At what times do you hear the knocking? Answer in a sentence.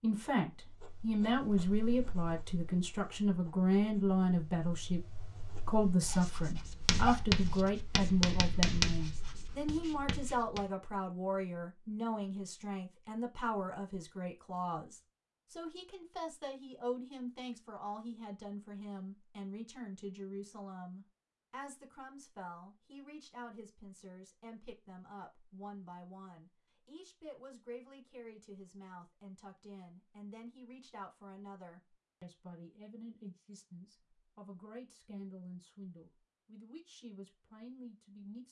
You can't hear the knocking here.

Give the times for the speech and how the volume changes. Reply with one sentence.
The speech can be heard from 0.0 to 38.4 s, getting quieter.